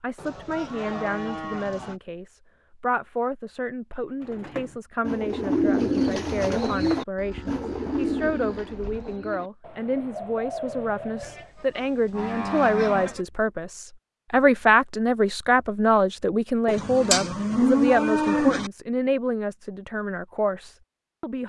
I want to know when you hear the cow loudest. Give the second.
18 s.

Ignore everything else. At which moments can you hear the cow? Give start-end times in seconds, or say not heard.
0.1-2.0, 7.2-9.2, 11.2-13.2, 16.6-18.7.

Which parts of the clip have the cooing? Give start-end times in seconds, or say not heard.
4.2-11.5.